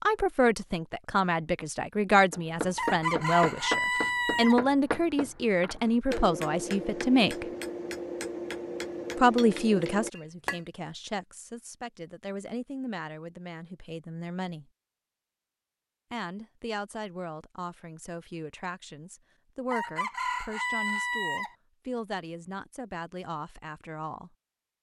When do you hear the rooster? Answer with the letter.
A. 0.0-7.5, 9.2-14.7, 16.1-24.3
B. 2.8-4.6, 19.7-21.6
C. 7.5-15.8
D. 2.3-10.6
B.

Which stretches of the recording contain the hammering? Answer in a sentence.
The hammering can be heard from 2.3 to 10.6 s.